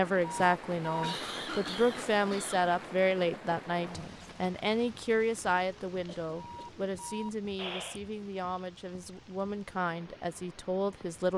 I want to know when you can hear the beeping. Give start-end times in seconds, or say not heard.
0.2-1.1, 6.3-8.0.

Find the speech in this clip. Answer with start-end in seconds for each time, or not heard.
0.0-11.3.